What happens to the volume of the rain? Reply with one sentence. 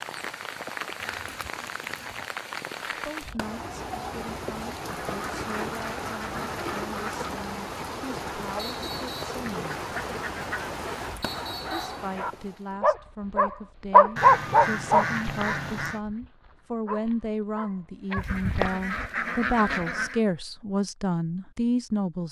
The volume of the rain stays about the same.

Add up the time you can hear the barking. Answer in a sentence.
You can hear the barking for 7 seconds altogether.